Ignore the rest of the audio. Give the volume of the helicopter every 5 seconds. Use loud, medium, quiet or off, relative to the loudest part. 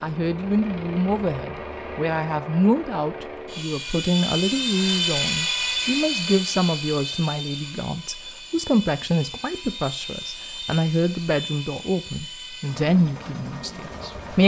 loud, loud, medium.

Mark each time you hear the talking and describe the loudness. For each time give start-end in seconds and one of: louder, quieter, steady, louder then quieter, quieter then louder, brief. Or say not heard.
0.0-14.4 steady.